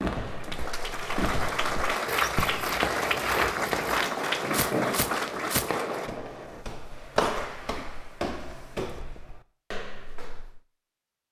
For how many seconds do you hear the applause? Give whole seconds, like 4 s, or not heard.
6 s.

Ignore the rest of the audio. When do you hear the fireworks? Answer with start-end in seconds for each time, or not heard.
0.0-6.6.